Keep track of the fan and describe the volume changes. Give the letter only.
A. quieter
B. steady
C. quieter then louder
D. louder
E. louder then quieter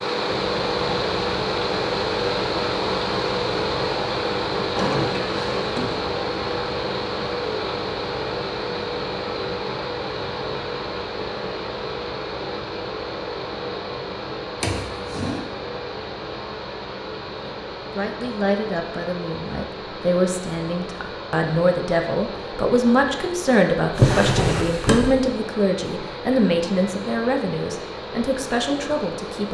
A.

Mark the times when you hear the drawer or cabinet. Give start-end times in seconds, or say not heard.
4.8-6.0, 14.6-15.4, 23.9-25.1.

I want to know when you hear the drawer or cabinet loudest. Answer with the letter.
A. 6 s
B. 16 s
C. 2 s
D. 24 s
D.